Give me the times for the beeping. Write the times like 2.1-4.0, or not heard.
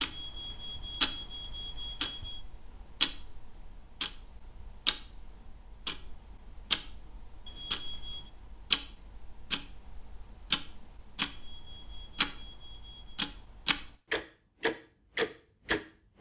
0.0-2.5, 7.5-8.3, 11.3-13.2.